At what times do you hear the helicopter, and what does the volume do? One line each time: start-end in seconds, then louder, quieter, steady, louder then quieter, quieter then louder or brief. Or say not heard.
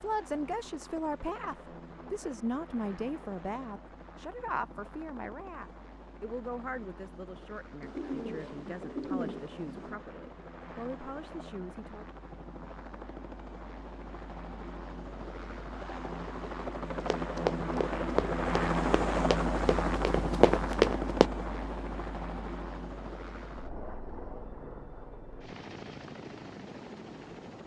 0.0-27.6 louder then quieter.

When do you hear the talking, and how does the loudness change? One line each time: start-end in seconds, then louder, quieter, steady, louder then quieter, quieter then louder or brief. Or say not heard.
0.0-12.1 quieter.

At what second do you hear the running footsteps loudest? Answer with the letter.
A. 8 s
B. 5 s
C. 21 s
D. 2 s
C.